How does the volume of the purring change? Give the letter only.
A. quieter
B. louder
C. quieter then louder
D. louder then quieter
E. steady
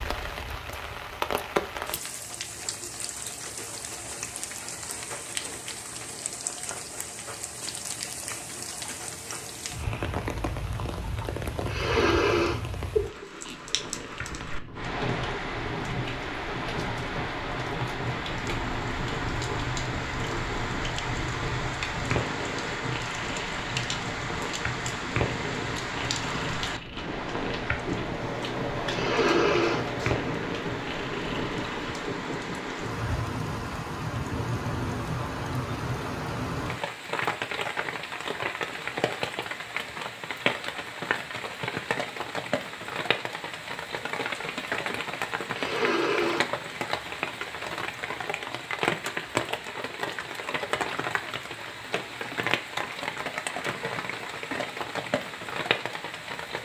B.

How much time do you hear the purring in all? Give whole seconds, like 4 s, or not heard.
19 s.